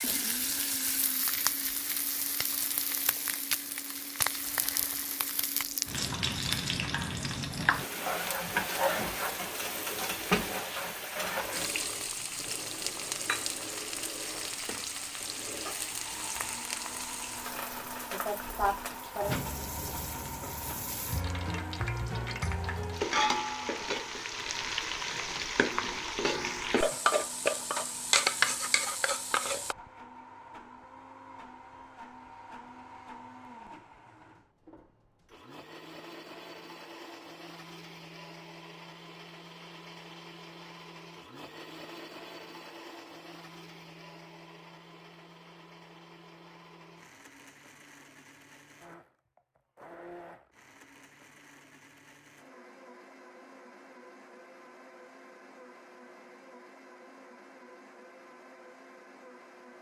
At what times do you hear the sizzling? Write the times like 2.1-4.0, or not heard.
0.0-29.8.